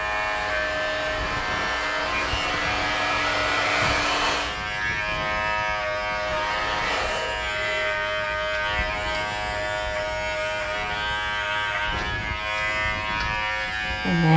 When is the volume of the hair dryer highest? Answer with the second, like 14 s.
4 s.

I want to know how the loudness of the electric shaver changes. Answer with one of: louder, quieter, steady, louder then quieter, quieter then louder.
steady.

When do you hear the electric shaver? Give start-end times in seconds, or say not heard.
0.0-14.3.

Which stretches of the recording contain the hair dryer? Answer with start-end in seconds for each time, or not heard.
0.0-4.6, 6.3-8.1.